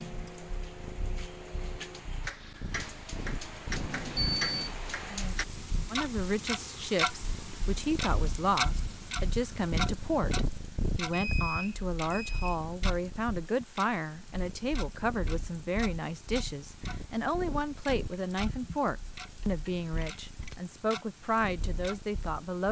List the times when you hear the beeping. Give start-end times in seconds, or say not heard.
3.7-4.8, 11.1-12.6, 19.4-20.6.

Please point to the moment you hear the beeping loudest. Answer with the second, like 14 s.
4 s.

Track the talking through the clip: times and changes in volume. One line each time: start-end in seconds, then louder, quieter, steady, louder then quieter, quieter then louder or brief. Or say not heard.
5.9-22.6 steady.